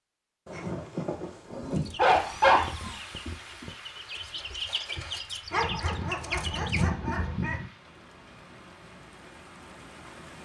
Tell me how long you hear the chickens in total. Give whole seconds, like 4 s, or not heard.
5 s.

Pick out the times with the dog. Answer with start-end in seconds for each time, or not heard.
0.5-2.7, 5.5-7.7.